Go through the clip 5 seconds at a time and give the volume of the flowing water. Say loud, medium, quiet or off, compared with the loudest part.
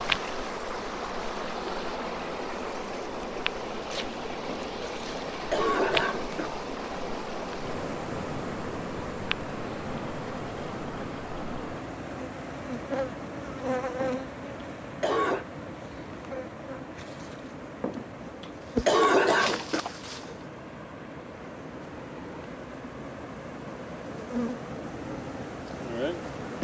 loud, loud, loud, medium, medium, loud.